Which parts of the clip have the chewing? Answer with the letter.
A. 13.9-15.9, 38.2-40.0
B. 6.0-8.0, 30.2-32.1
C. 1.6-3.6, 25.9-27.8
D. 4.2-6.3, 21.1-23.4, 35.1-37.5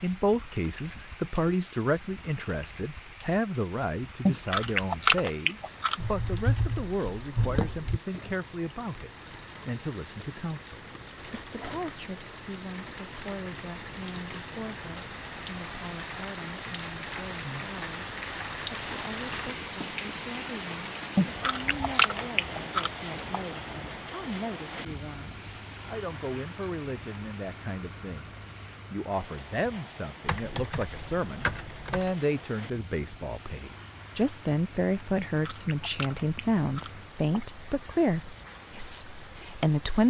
D.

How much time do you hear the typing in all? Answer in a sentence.
You can hear the typing for 4 seconds altogether.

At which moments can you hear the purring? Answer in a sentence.
You can't hear the purring here.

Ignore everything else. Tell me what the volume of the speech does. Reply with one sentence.
The loudness of the speech goes down, then up.